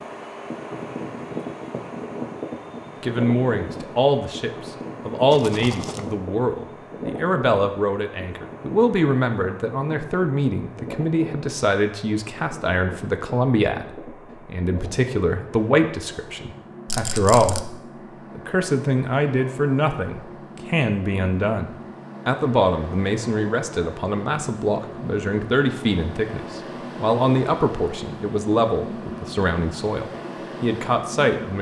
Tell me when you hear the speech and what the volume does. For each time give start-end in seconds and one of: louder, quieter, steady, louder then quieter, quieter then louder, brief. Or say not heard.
3.0-31.5 steady.